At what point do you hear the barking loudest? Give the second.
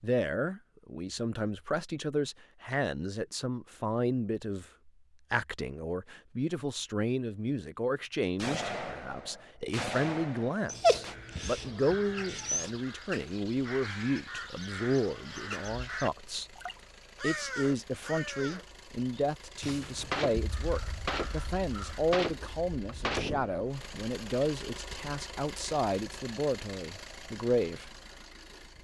11 s.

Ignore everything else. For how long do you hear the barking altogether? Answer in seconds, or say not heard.
2 s.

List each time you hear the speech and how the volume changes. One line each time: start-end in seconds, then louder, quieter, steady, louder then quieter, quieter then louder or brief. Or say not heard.
0.0-16.5 steady
17.2-27.9 steady.